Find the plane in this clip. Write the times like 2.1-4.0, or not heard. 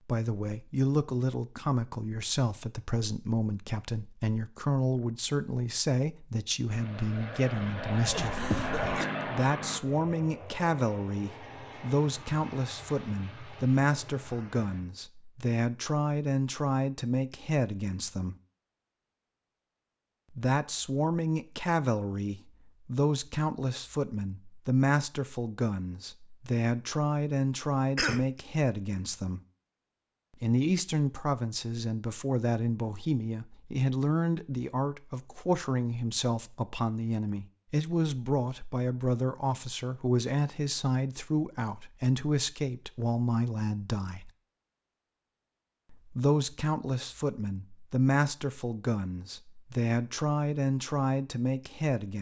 6.7-14.9.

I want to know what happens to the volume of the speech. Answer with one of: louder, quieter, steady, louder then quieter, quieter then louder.
steady.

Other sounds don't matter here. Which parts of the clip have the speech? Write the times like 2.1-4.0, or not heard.
0.1-8.4, 9.2-18.4, 20.3-29.4, 30.4-44.3, 45.9-52.1.